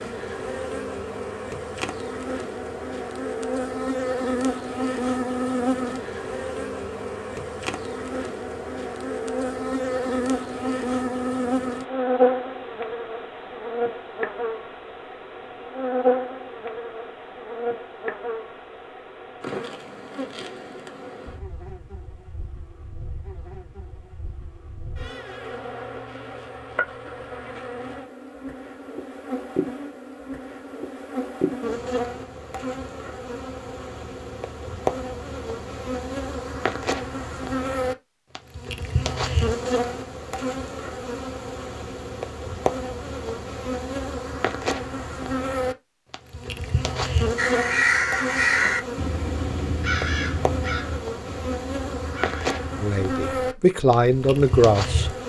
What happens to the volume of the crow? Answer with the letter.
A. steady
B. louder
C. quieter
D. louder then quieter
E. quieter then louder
C.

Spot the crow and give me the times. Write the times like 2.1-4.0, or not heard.
47.4-52.9.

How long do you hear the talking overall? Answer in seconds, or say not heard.
2 s.